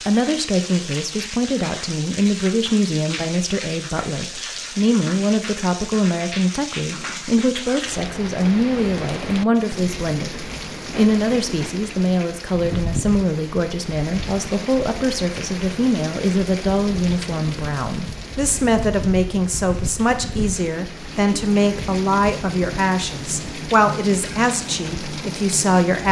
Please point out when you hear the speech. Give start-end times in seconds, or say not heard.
0.1-26.0.